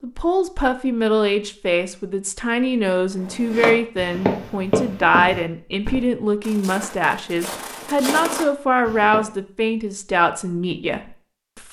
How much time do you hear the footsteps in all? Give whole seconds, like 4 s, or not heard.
6 s.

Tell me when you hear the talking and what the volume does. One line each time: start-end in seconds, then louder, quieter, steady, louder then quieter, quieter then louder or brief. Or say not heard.
0.0-11.6 steady.